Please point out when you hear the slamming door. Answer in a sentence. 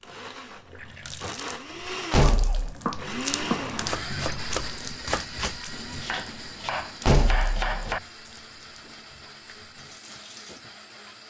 You can hear the slamming door from 2.1 to 2.8 s and from 7.0 to 8.0 s.